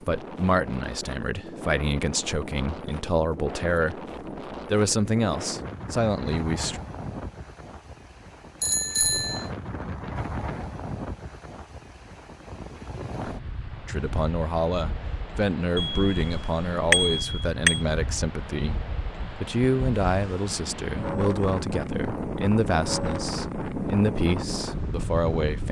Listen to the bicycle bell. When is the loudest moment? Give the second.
17 s.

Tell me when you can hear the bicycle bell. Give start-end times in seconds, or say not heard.
8.6-9.5, 15.8-17.8.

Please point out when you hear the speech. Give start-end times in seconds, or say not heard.
0.1-6.8, 13.8-25.6.